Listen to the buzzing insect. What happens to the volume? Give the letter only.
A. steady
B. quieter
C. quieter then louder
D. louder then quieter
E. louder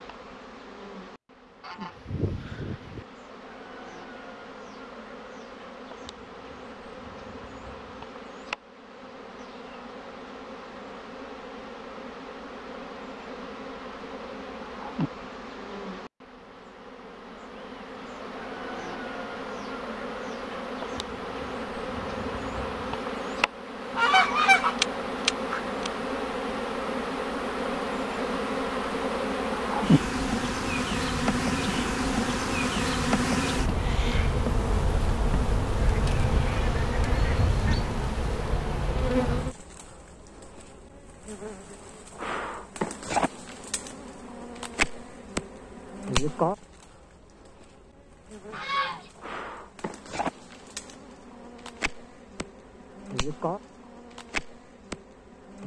D.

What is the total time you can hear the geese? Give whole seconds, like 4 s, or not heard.
6 s.